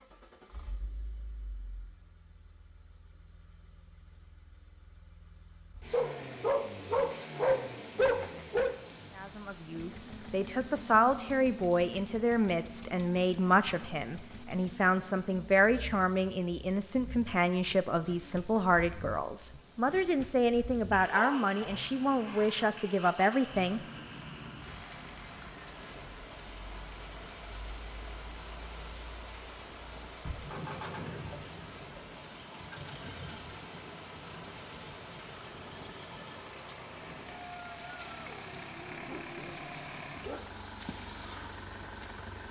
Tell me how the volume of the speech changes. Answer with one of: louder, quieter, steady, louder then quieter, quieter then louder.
steady.